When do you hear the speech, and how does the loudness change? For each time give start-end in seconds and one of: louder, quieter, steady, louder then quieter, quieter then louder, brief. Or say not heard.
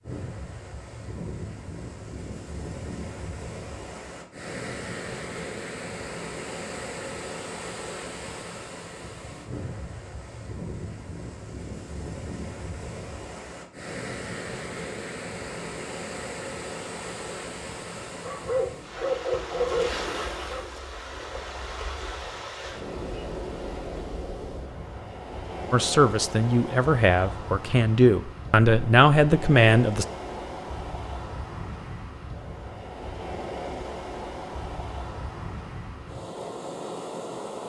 25.7-30.1 louder.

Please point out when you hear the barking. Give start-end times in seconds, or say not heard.
18.2-20.6.